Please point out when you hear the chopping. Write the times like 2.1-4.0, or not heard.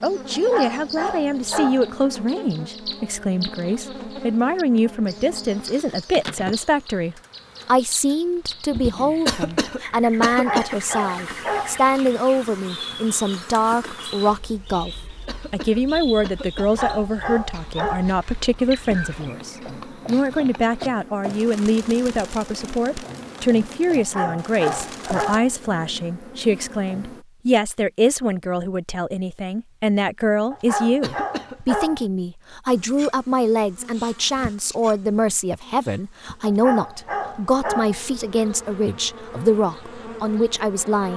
not heard.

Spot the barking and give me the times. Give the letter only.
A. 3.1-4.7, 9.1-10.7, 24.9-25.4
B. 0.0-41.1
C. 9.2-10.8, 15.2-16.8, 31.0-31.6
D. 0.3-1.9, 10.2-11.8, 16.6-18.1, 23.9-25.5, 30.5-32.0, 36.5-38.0
D.